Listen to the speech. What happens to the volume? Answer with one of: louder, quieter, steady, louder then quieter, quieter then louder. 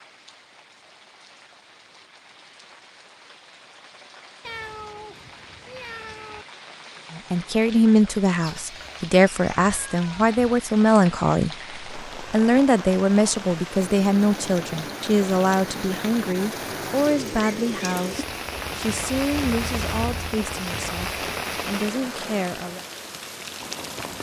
quieter.